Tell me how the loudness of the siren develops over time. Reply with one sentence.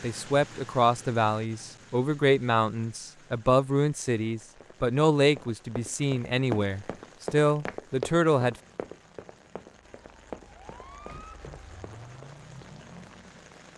The volume of the siren goes up.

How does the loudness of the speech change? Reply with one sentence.
The loudness of the speech stays about the same.